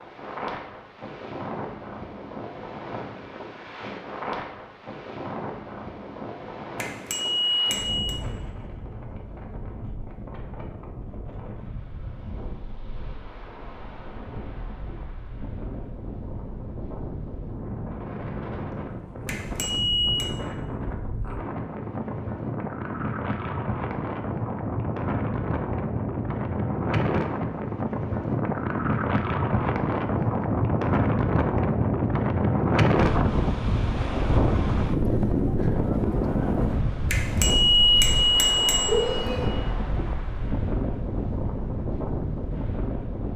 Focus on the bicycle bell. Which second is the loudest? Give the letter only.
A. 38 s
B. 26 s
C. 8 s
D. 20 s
A.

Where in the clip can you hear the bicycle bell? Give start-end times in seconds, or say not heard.
6.8-8.2, 19.2-20.3, 37.1-39.5.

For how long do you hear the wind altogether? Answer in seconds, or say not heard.
43 s.